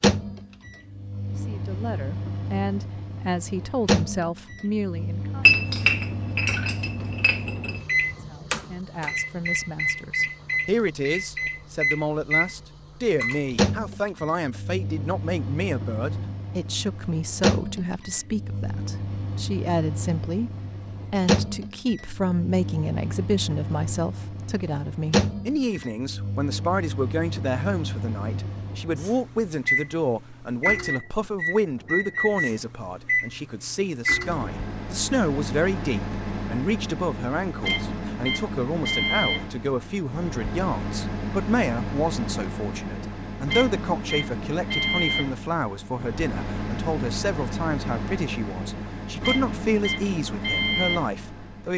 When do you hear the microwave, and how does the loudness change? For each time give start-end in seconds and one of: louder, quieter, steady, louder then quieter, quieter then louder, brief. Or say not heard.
0.0-51.7 steady.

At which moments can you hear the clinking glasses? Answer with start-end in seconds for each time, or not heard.
5.4-7.8.